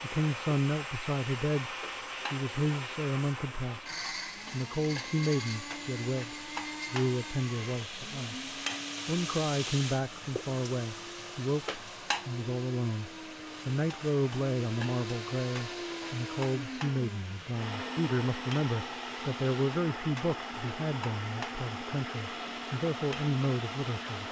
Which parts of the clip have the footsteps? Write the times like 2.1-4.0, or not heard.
not heard.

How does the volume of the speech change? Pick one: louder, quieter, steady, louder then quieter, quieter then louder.
steady.